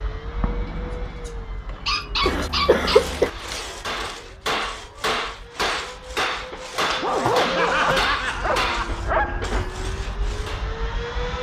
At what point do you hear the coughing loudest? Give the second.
3 s.